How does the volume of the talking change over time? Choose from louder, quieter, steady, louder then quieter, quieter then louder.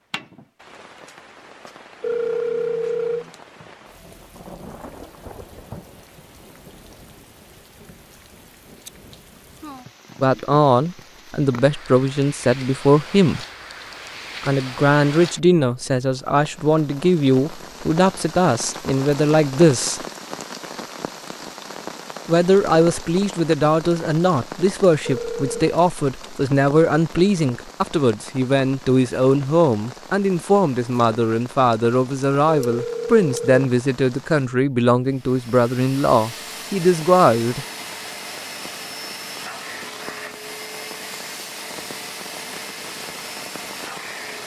steady.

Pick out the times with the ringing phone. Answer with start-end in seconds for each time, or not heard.
2.0-3.3, 25.1-25.6, 32.5-33.5.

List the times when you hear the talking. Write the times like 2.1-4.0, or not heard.
10.2-13.4, 14.4-20.0, 22.2-37.6.